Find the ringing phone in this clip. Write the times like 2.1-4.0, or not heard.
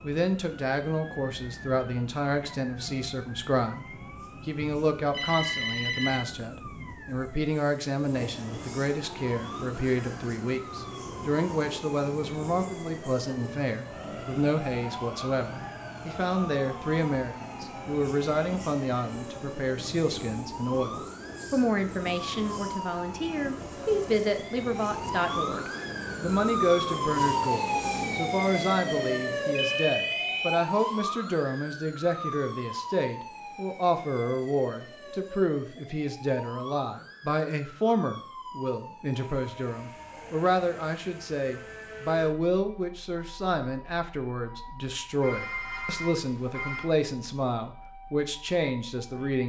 5.1-6.2, 29.6-30.6, 45.2-46.9.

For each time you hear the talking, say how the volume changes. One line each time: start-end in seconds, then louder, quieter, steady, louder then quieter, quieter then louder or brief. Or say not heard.
0.0-49.4 steady.